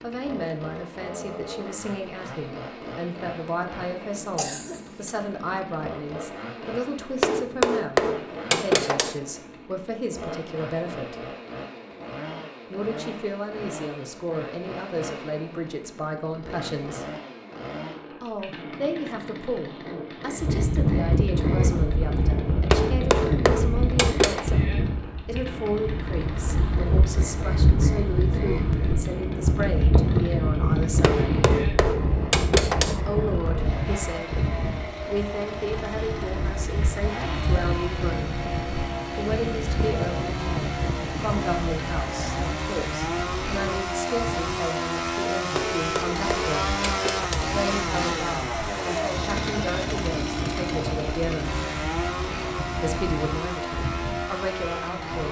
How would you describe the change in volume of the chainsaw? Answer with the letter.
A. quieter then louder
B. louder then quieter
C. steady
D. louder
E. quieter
D.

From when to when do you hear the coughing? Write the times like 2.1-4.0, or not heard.
4.3-5.2.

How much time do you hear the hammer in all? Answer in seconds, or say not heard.
8 s.